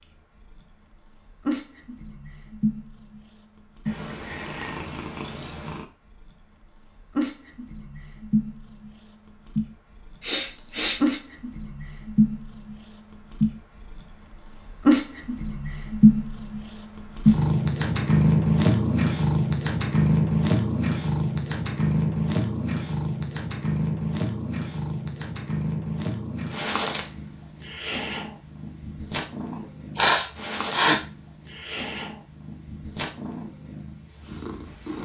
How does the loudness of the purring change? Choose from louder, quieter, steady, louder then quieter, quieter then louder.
louder then quieter.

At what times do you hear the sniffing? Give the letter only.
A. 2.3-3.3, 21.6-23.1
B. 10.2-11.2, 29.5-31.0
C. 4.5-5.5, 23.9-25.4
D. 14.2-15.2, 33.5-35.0
B.